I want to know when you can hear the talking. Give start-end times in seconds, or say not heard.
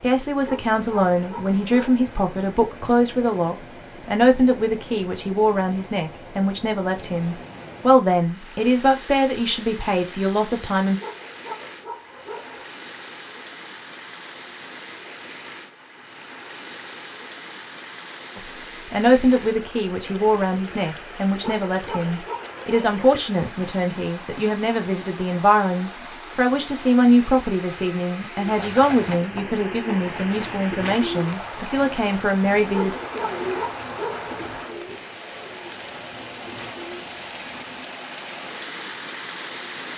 0.0-11.0, 18.4-33.0.